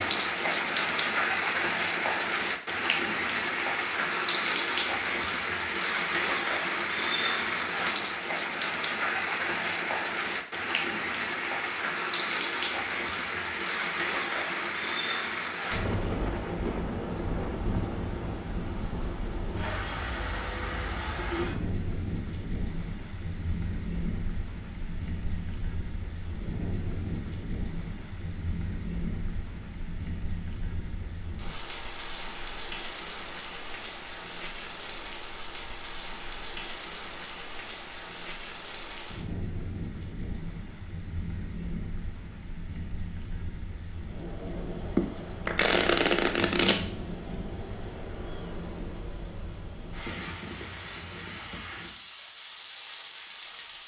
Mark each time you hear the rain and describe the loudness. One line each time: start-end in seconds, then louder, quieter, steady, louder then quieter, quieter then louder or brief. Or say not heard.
0.0-53.8 quieter.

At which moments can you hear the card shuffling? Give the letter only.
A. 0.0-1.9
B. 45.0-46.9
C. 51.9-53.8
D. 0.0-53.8
B.